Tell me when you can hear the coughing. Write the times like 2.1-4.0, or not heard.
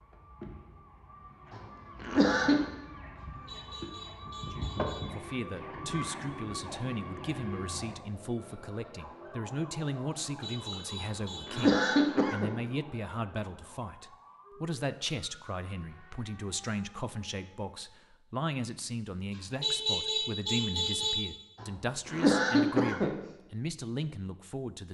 1.5-2.6, 11.0-12.5, 21.6-23.1.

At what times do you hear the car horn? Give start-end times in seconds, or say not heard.
3.2-5.0, 10.4-11.9, 19.6-21.1.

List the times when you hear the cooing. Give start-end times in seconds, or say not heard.
not heard.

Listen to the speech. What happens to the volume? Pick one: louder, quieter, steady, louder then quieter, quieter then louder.
steady.